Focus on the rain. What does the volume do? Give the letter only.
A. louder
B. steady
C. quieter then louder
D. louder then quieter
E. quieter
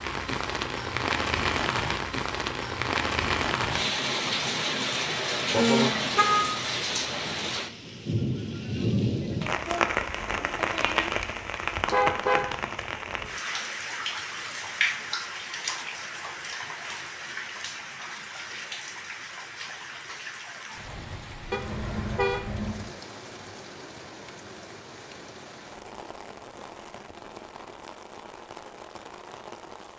E.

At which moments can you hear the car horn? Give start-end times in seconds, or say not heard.
5.5-6.5, 11.8-12.9, 21.5-22.9.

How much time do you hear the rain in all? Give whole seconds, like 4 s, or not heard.
30 s.